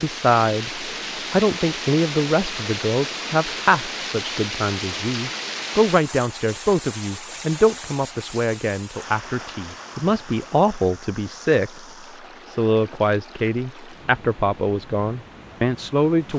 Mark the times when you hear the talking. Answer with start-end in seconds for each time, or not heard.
0.0-11.8, 12.4-16.3.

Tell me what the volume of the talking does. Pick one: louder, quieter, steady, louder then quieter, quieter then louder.
steady.